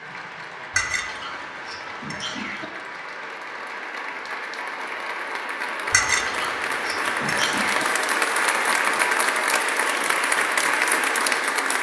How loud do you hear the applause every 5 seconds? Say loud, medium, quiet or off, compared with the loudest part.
quiet, loud, loud.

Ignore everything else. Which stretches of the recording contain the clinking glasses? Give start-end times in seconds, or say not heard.
0.7-2.6, 5.9-7.8.